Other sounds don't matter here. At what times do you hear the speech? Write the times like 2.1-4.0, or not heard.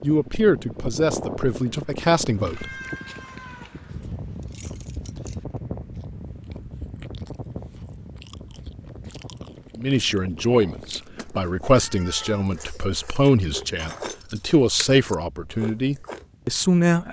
0.0-2.6, 9.8-17.0.